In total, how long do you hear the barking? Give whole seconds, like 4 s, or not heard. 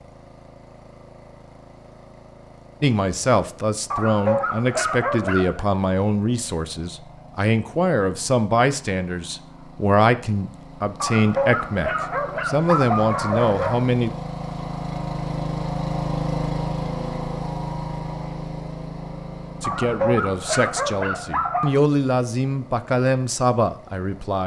7 s.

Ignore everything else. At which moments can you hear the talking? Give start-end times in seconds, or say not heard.
2.8-14.1, 19.6-24.4.